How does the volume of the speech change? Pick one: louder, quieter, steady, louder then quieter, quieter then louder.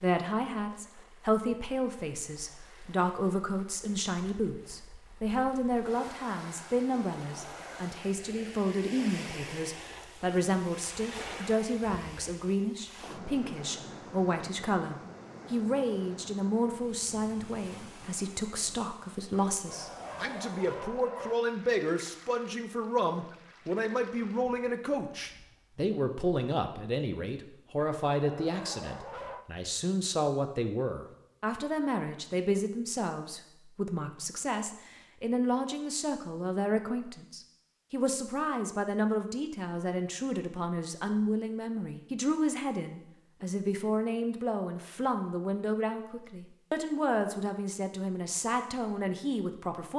steady.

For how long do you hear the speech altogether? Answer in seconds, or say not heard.
50 s.